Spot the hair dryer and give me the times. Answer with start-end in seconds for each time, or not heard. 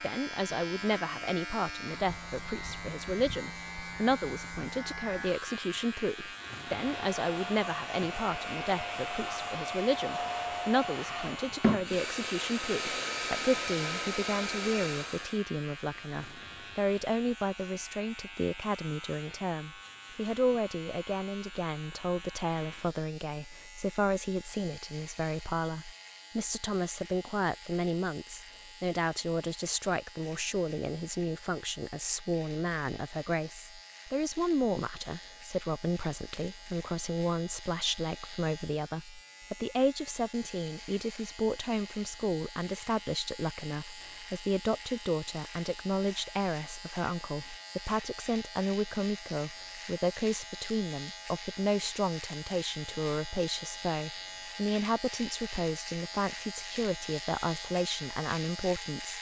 6.7-15.4.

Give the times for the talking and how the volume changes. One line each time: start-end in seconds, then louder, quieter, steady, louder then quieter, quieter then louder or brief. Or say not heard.
0.0-59.1 steady.